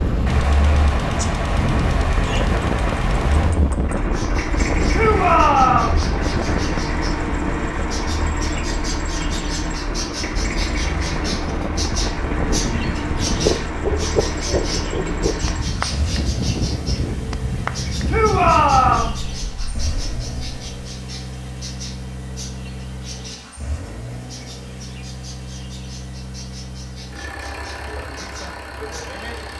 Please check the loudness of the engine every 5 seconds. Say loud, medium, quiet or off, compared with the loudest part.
loud, loud, loud, medium, medium, medium.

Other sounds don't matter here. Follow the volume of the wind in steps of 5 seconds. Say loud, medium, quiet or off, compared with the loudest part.
loud, loud, loud, loud, off, off.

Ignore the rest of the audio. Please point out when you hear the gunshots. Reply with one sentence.
You can hear the gunshots from 0.2 to 3.6 s.